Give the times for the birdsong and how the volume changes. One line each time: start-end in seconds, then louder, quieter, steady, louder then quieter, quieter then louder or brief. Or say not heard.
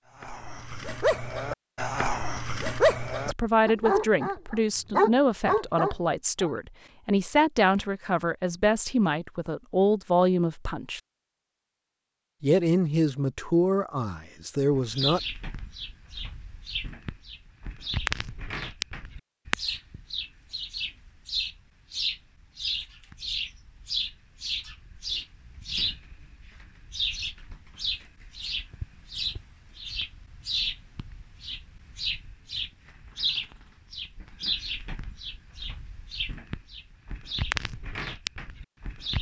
14.7-39.1 steady.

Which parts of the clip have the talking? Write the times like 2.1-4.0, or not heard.
3.2-11.0, 12.4-15.2.